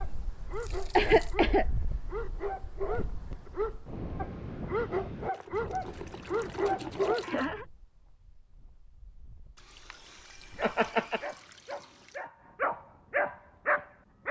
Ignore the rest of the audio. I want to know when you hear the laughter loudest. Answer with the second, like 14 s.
1 s.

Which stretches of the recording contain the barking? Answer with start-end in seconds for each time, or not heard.
0.0-7.2, 10.6-14.2.